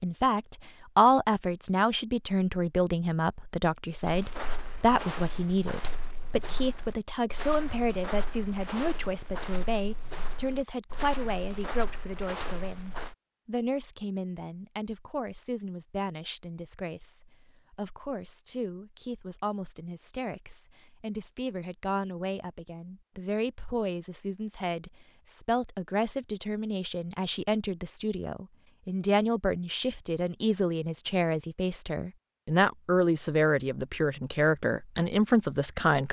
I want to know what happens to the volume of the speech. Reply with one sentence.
The volume of the speech goes down, then up.